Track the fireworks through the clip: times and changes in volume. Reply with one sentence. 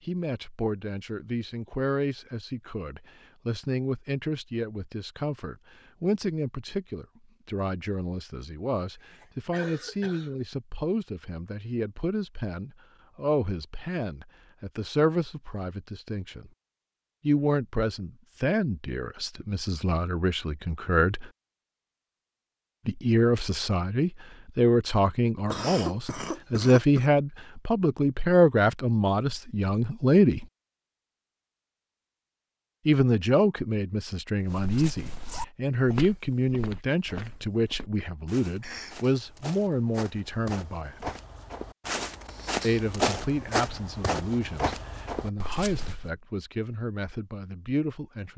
You can't hear the fireworks here.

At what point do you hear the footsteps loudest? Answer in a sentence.
The loudest moment of the footsteps is at 43 seconds.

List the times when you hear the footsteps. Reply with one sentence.
The footsteps can be heard from 34.5 to 46.0 s.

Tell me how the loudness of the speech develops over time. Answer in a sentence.
The volume of the speech goes up, then down.